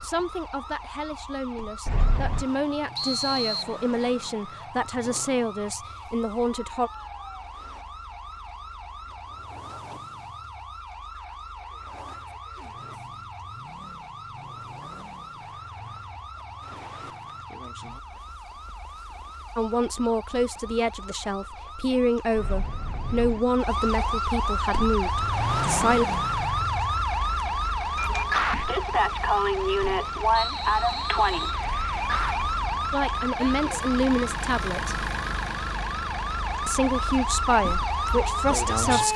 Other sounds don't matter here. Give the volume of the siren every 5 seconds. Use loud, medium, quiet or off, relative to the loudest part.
quiet, quiet, quiet, quiet, medium, loud, loud, loud.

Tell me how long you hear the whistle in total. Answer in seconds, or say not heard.
2 s.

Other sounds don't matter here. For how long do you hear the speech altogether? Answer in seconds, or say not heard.
18 s.